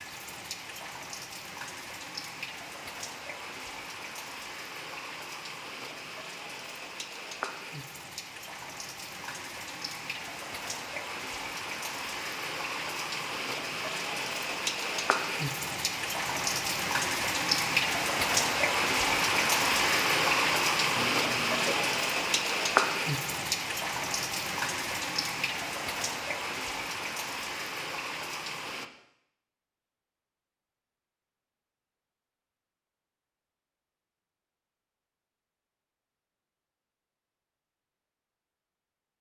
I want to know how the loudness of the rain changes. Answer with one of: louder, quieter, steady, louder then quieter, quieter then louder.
louder then quieter.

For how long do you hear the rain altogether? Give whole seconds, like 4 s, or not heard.
29 s.